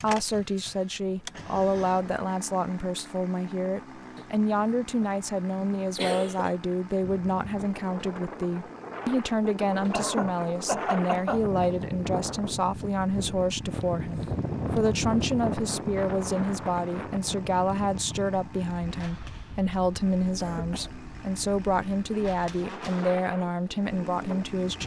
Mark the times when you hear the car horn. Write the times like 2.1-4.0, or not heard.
not heard.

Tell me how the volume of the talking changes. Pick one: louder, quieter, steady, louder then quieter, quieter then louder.
steady.